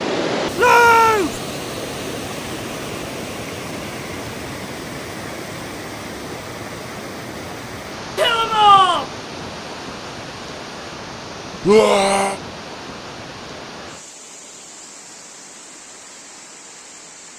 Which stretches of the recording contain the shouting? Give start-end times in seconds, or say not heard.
0.6-1.4, 8.2-9.1, 11.7-12.3.